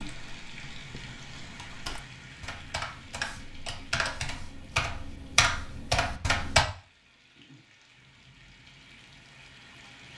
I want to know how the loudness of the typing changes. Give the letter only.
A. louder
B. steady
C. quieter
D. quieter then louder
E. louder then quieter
A.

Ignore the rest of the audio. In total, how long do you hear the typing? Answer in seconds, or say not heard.
7 s.